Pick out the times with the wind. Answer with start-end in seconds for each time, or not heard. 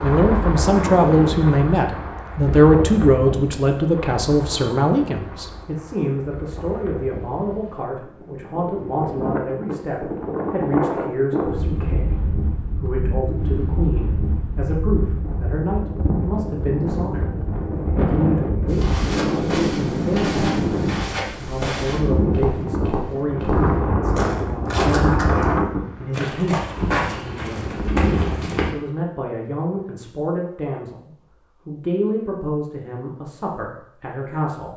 0.0-28.8.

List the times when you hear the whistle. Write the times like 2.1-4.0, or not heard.
not heard.